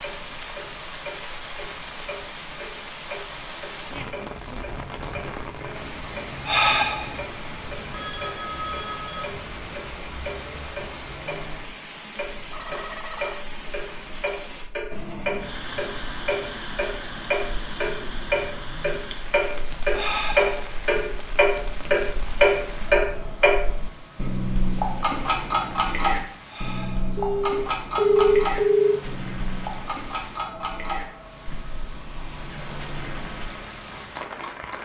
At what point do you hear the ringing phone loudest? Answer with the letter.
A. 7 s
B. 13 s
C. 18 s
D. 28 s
D.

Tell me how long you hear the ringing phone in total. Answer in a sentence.
You can hear the ringing phone for 4 seconds altogether.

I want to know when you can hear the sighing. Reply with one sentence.
You can hear the sighing from 6.5 to 7.2 s, from 19.9 to 20.8 s and from 26.4 to 27.1 s.